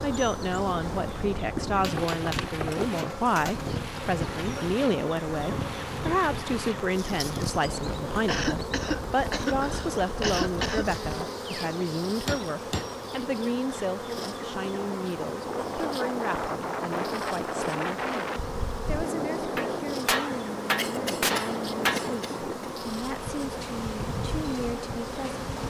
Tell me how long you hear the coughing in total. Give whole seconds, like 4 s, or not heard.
4 s.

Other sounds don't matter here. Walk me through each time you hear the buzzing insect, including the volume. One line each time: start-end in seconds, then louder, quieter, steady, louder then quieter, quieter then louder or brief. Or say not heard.
0.0-25.6 steady.